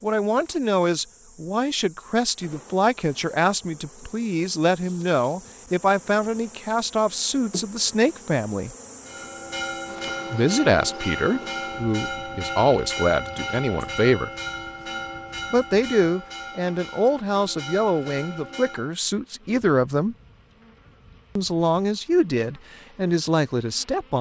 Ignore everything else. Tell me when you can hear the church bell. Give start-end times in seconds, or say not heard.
9.1-18.9.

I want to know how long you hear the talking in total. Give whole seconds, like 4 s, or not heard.
20 s.